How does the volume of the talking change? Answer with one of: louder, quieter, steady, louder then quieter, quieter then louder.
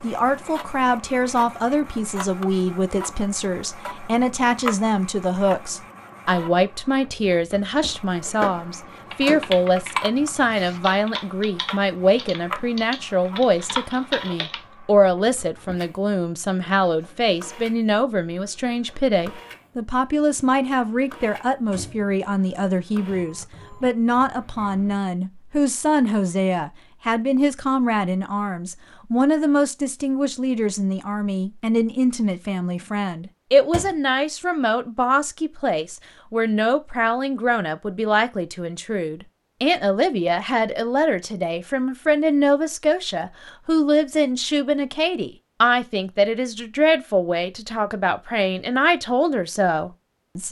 steady.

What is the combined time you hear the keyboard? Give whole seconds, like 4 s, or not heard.
6 s.